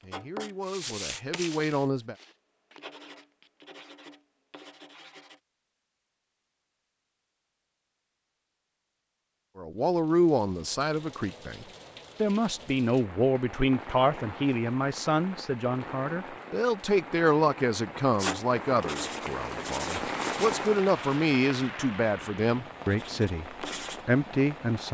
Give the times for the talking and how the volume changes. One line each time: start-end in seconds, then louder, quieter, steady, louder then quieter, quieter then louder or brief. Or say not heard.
0.0-2.1 brief
9.6-24.8 steady.